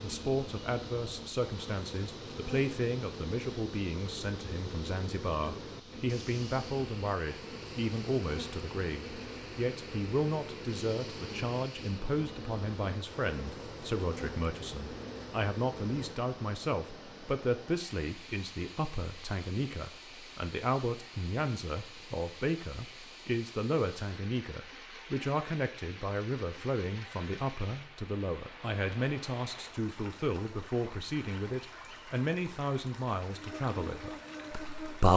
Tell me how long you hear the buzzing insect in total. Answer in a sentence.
The buzzing insect can be heard for 18 seconds in total.